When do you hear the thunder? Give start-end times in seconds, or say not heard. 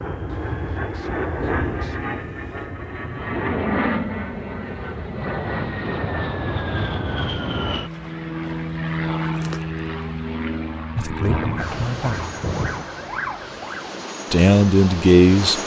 11.2-12.8.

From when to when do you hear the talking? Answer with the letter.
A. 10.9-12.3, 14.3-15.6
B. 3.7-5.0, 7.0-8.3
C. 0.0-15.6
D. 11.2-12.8
A.